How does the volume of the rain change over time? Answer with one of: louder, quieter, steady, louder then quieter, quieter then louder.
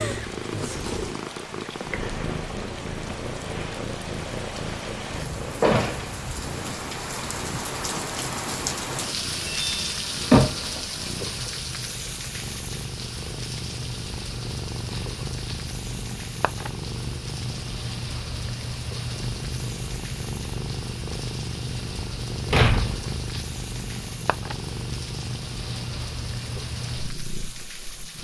louder then quieter.